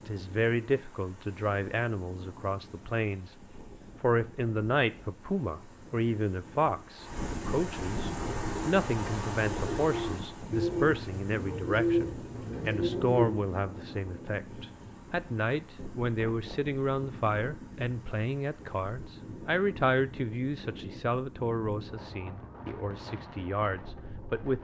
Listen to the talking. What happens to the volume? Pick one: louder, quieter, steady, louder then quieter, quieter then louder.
steady.